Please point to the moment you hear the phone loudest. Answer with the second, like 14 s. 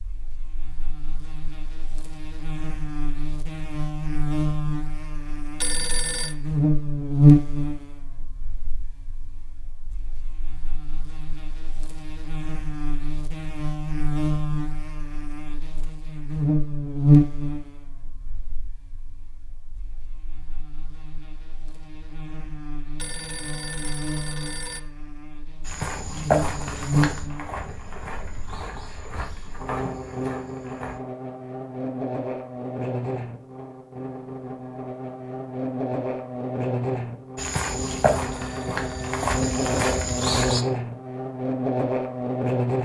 6 s.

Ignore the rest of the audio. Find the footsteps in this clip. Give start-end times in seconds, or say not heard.
25.6-31.0, 37.4-40.6.